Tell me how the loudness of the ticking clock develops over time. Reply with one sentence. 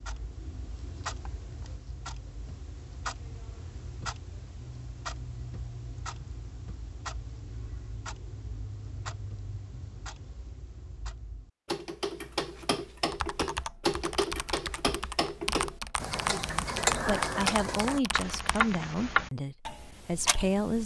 The loudness of the ticking clock goes up.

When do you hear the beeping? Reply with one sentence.
You can't hear the beeping here.